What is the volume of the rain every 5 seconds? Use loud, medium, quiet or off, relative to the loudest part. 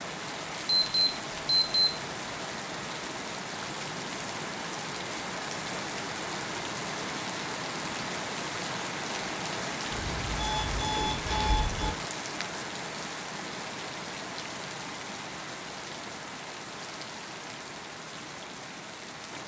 loud, loud, loud, medium.